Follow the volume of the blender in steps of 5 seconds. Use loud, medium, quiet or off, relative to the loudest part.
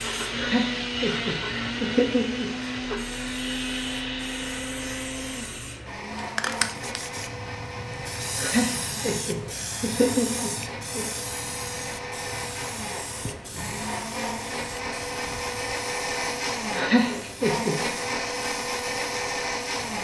loud, medium, medium, loud.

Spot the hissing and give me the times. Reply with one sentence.
The hissing can be heard from 0.0 to 19.9 s.